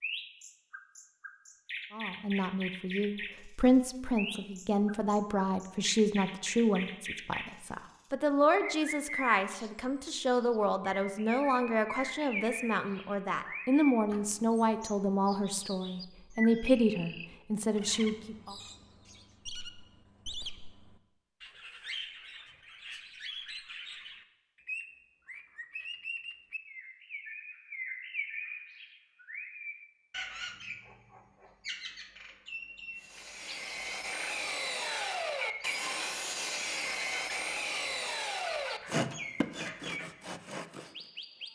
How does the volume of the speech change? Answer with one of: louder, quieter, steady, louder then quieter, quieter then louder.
steady.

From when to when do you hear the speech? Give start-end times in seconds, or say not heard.
1.9-18.6.